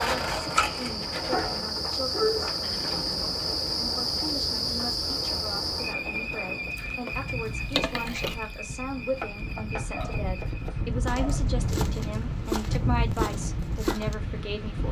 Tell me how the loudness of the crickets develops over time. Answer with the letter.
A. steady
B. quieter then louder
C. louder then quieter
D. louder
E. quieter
E.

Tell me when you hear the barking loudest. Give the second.
2 s.